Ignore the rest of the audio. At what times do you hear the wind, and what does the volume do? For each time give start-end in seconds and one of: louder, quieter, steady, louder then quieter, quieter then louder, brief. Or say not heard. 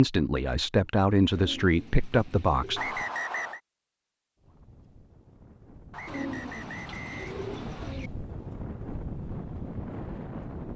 4.3-10.7 louder.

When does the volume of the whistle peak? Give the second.
3 s.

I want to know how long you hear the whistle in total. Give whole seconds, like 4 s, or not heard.
3 s.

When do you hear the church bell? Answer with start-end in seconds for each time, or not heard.
not heard.